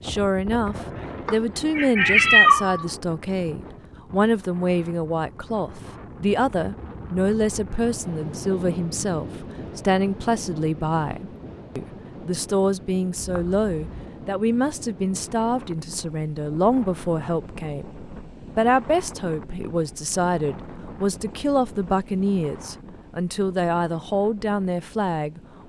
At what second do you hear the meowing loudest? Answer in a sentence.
The volume of the meowing peaks at 2 seconds.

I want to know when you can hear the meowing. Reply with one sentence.
The meowing can be heard from 1.2 to 2.9 s and from 13.2 to 14.1 s.